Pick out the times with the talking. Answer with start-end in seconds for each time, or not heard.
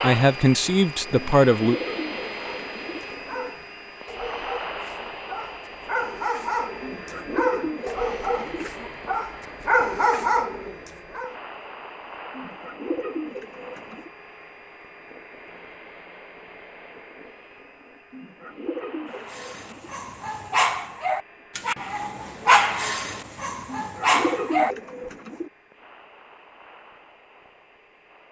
0.0-1.8.